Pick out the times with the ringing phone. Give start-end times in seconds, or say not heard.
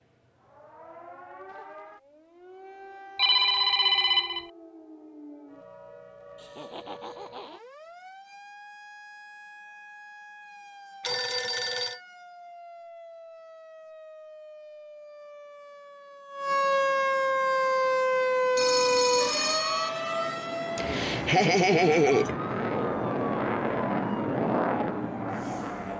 3.1-4.5, 11.0-12.0, 18.6-19.9.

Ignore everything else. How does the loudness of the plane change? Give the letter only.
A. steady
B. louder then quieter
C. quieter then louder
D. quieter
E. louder
E.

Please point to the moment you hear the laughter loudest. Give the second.
22 s.